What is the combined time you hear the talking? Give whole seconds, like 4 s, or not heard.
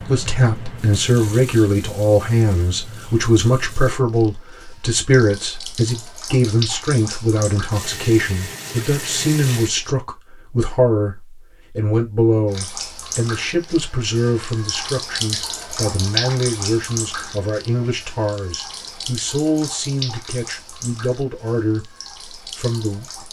23 s.